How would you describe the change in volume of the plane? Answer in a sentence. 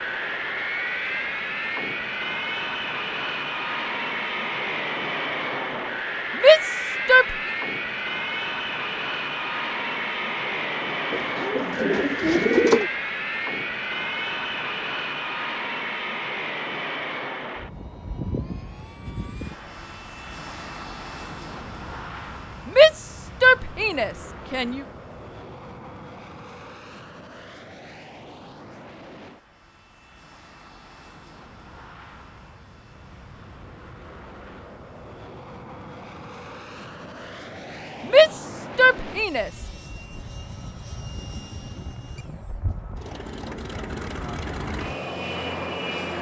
The volume of the plane goes down, then up.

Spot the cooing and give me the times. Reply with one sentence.
You can hear the cooing from 11.1 to 12.9 s.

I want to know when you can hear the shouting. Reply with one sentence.
You can hear the shouting from 6.3 to 7.3 s, from 22.6 to 24.8 s and from 38.0 to 39.5 s.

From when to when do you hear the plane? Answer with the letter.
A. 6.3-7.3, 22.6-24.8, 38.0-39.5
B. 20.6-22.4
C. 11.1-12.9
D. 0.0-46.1
D.